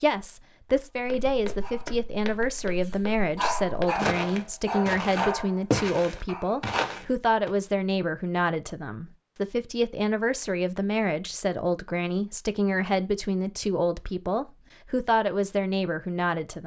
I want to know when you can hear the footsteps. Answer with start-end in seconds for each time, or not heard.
0.9-7.5.